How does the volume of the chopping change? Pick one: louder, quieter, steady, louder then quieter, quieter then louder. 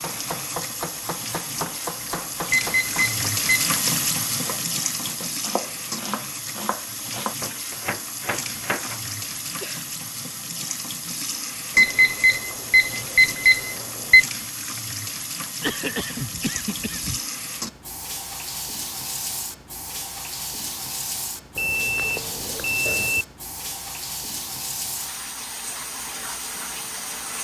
quieter then louder.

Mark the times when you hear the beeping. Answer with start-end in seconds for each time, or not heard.
2.5-3.8, 11.8-14.2, 21.6-23.2.